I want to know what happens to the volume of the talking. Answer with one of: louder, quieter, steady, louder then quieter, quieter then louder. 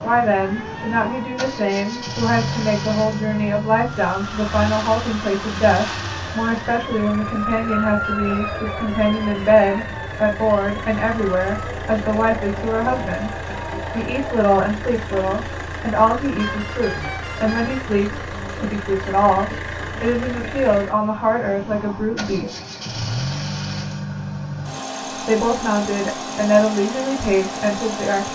steady.